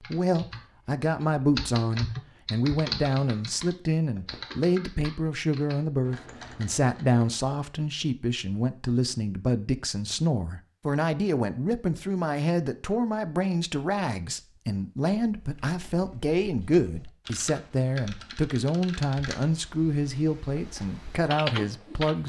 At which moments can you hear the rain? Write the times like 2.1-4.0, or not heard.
not heard.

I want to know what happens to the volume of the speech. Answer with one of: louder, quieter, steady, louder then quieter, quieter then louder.
steady.